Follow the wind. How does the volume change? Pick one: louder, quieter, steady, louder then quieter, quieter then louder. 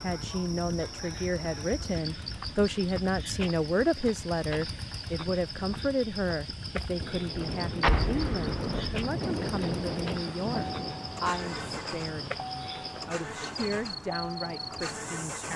quieter.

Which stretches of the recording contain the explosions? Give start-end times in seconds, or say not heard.
7.8-8.9.